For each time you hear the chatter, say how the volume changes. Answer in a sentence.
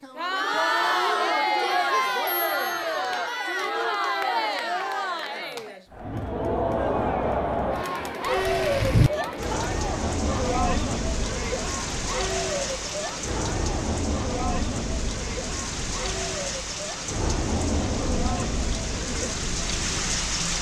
You can hear the chatter from 0.0 to 20.5 s, getting quieter.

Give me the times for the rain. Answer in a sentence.
The rain can be heard from 8.2 to 20.5 s.